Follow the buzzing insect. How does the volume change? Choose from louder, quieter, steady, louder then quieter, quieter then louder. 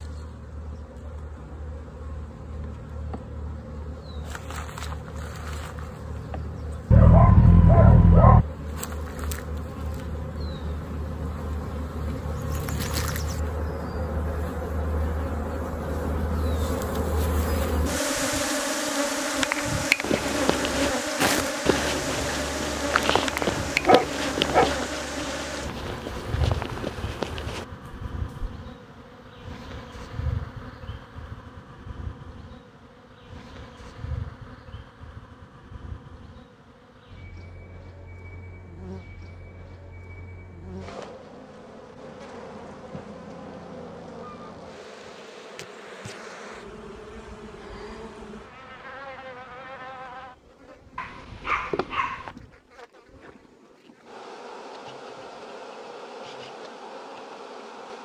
louder then quieter.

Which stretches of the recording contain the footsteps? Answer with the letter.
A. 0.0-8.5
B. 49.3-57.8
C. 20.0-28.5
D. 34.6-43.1
C.